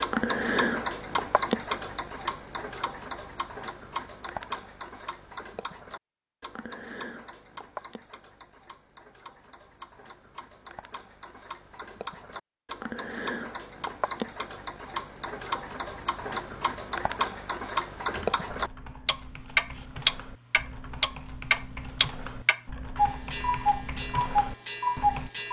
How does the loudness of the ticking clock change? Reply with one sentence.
The volume of the ticking clock goes down, then up.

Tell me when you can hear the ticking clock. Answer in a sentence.
You can hear the ticking clock from 0.0 to 25.4 s.